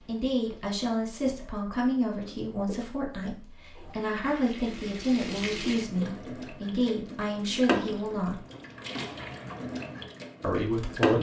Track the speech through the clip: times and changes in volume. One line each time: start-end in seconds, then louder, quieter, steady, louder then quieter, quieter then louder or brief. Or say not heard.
0.1-8.4 steady
10.4-11.1 brief.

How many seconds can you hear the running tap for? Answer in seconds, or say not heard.
11 s.